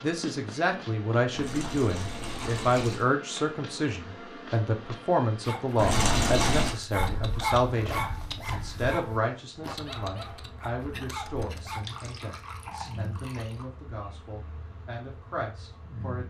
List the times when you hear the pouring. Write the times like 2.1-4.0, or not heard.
1.3-3.1, 5.8-6.8, 11.7-13.7.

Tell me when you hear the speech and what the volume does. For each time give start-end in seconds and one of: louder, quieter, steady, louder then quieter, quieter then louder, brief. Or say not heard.
0.0-16.2 quieter.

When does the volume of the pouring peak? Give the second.
6 s.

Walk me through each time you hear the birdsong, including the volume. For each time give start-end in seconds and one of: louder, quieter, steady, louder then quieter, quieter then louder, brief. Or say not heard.
not heard.